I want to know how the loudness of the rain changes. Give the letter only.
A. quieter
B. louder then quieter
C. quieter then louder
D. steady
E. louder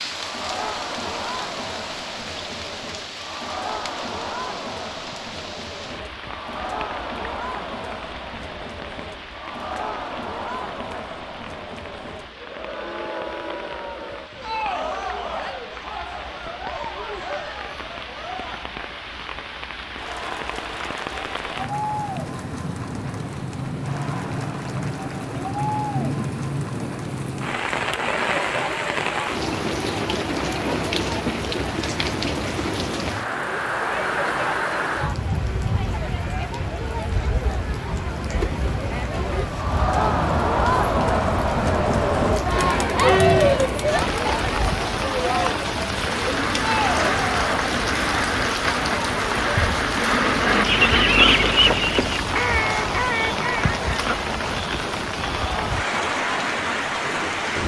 E.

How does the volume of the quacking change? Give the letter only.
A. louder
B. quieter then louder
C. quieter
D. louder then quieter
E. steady
D.